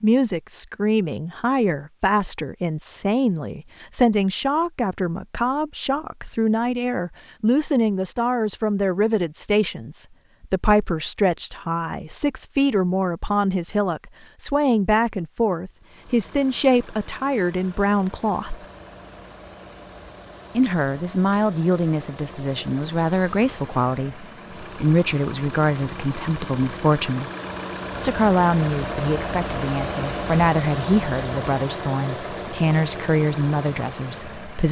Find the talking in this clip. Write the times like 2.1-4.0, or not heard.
0.0-18.6, 20.6-27.3, 28.0-34.6.